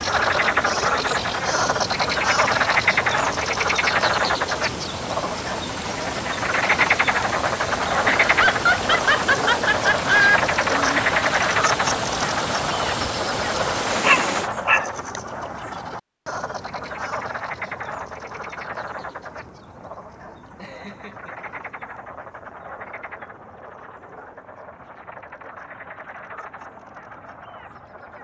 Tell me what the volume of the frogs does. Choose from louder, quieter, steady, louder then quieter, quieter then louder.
quieter.